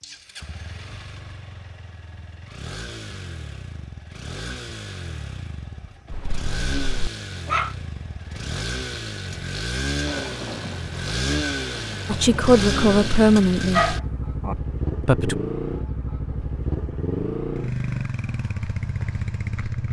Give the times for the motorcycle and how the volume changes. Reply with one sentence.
You can hear the motorcycle from 0.0 to 19.8 s, getting louder.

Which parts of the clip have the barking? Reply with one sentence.
The barking can be heard from 6.1 to 7.8 s and from 13.7 to 14.6 s.